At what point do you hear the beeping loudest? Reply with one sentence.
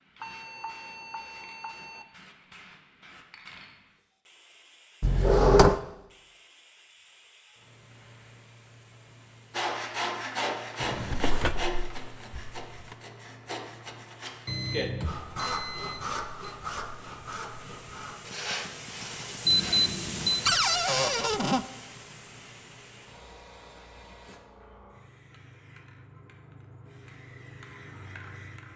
The volume of the beeping peaks at 20 seconds.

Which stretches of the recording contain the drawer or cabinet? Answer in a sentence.
You can hear the drawer or cabinet from 5.0 to 5.8 s, from 10.8 to 12.9 s and from 20.4 to 21.6 s.